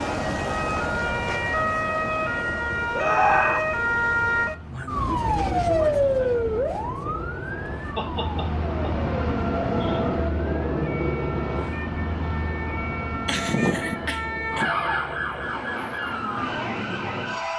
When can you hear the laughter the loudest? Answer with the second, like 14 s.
3 s.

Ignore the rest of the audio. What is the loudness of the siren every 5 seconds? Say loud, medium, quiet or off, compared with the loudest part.
loud, loud, medium, medium.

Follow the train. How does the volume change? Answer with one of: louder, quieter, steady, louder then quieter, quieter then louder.
louder then quieter.